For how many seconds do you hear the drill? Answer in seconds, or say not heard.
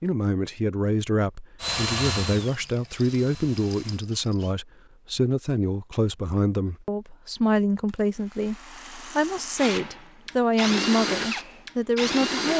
6 s.